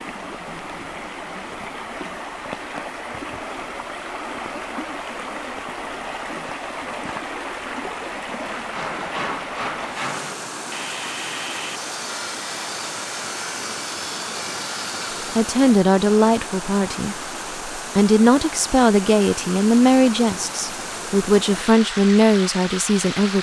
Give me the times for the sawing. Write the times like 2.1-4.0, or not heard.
8.5-15.3.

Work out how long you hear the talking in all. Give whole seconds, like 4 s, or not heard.
8 s.